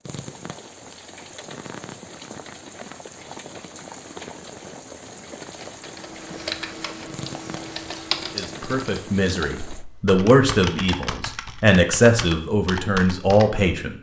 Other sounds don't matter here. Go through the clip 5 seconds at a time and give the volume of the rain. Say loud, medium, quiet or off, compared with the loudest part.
loud, loud, off.